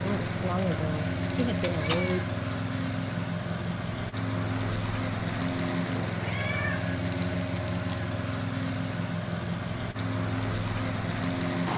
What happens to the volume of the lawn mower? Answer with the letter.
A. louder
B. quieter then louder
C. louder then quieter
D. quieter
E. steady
E.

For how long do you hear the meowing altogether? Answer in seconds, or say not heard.
2 s.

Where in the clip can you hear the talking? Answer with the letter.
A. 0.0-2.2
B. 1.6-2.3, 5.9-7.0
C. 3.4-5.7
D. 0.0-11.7
A.